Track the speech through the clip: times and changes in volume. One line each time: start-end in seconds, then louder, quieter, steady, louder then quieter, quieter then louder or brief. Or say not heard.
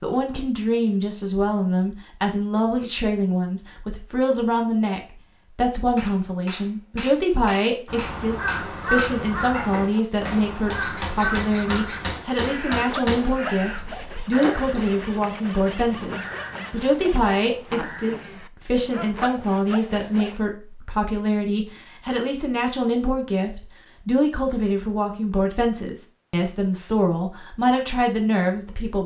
0.0-29.0 steady.